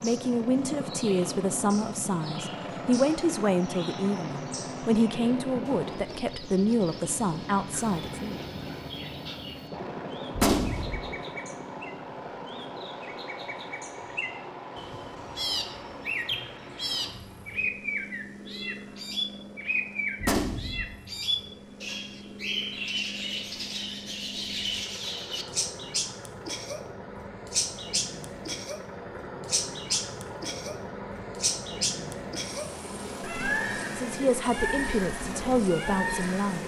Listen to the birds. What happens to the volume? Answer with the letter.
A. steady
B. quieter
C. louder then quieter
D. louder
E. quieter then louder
D.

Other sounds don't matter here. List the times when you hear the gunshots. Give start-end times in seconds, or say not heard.
10.3-11.0, 20.2-20.9.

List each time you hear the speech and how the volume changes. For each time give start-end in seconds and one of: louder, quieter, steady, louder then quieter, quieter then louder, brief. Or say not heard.
0.0-8.4 steady
34.0-36.6 brief.